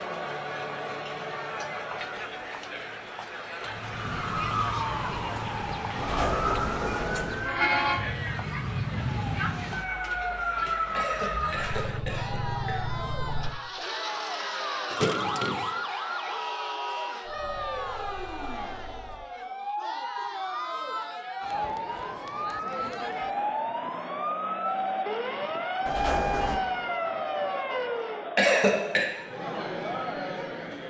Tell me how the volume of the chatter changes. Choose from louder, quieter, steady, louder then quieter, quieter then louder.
steady.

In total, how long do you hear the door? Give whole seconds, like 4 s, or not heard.
3 s.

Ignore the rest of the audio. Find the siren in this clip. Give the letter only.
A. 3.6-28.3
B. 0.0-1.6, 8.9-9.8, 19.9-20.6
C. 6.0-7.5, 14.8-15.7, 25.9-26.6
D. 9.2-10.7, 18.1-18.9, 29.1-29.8
A.